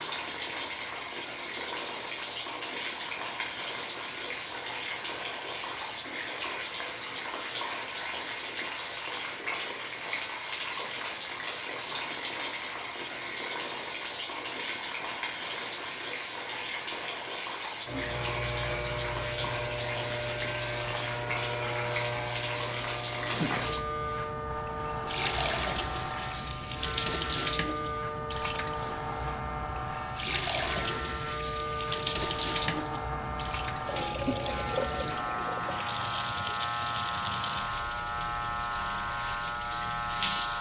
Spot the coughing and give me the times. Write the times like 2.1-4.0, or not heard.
not heard.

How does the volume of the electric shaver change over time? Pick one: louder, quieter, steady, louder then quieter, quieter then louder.
louder.